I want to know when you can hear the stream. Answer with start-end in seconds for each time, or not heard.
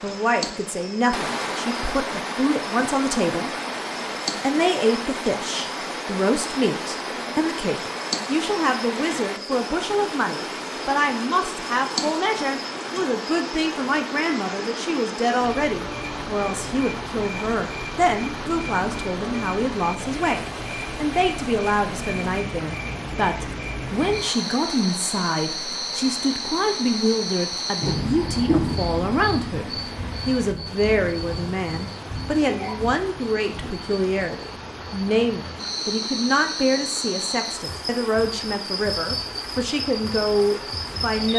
0.0-41.3.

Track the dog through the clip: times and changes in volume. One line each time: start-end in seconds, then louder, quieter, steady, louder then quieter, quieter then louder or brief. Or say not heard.
not heard.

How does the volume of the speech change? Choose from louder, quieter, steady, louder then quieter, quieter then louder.
steady.